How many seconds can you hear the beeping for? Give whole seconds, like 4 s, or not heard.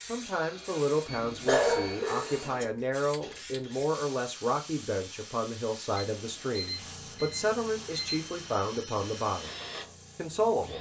3 s.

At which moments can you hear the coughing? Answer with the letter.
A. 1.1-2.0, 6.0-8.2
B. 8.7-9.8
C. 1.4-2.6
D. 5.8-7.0
C.